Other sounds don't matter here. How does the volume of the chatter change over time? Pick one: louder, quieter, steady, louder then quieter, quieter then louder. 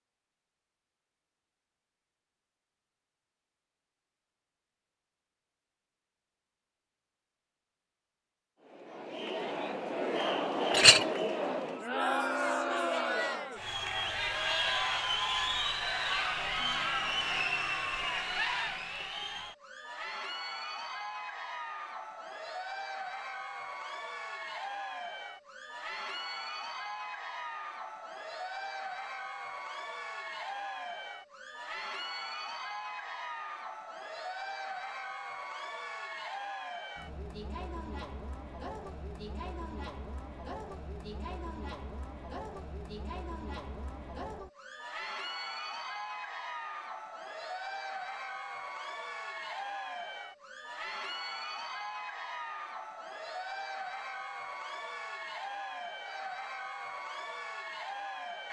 quieter.